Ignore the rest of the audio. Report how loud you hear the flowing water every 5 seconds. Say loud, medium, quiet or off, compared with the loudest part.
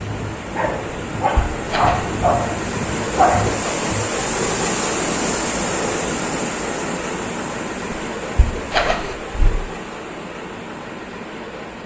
loud, loud, medium.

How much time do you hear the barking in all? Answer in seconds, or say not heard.
4 s.